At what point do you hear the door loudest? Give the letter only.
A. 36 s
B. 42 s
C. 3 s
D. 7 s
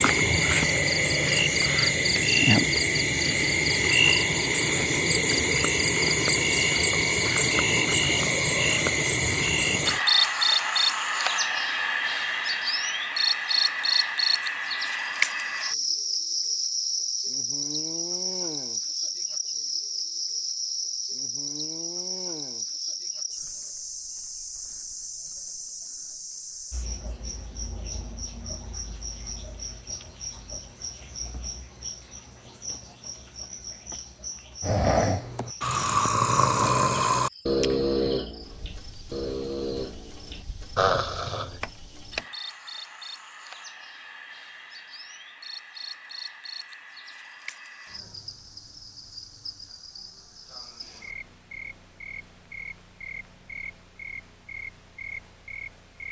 B.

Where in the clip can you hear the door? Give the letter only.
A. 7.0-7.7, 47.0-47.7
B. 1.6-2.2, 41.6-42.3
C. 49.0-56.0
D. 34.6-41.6
B.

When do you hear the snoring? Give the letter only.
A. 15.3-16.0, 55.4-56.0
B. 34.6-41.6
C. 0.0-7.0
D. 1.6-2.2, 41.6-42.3
B.